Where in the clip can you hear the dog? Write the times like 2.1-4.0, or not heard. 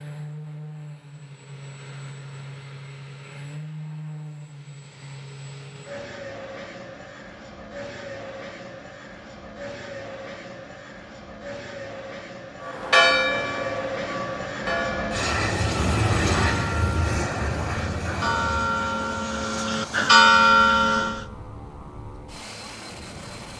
not heard.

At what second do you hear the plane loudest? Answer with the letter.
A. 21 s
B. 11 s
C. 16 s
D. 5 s
C.